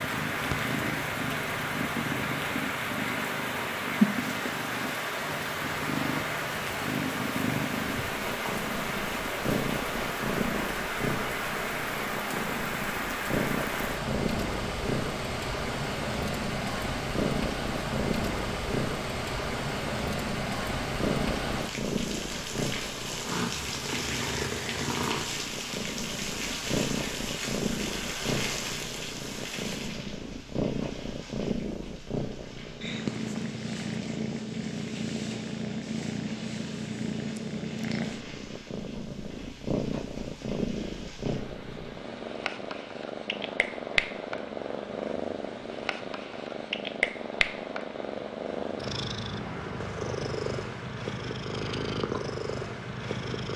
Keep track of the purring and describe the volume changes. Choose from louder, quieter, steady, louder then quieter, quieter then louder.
steady.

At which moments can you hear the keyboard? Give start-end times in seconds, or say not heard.
not heard.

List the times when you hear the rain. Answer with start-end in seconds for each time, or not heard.
0.0-53.5.